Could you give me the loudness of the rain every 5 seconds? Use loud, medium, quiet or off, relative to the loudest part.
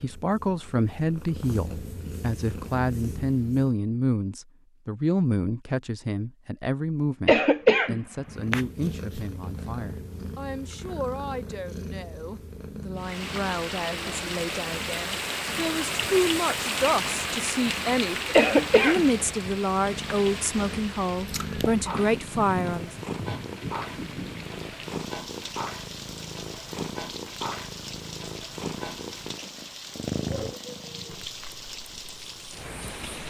off, off, loud, loud, medium, medium, medium.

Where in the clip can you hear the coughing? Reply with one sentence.
The coughing can be heard from 7.2 to 8.4 s and from 18.3 to 19.5 s.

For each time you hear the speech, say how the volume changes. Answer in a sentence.
The speech can be heard from 0.0 to 22.9 s, getting quieter then louder.